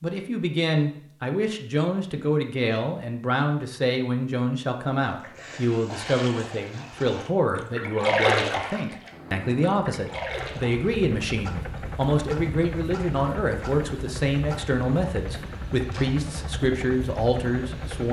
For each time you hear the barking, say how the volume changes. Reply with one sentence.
You can't hear the barking here.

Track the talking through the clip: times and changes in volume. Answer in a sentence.
The talking can be heard from 0.0 to 18.0 s, at a steady volume.